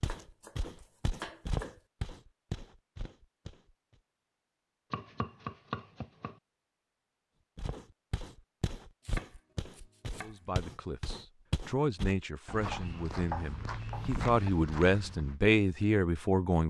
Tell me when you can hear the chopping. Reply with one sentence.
You can hear the chopping from 0.1 to 1.8 s, from 4.9 to 6.4 s, from 9.1 to 10.4 s and from 12.7 to 14.5 s.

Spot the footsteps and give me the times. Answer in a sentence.
The footsteps can be heard from 0.0 to 4.0 s and from 7.5 to 15.3 s.